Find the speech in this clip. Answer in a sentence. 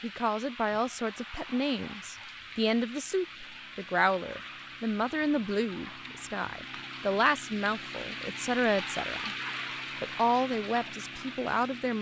You can hear the speech from 0.0 to 9.3 s and from 10.0 to 11.9 s.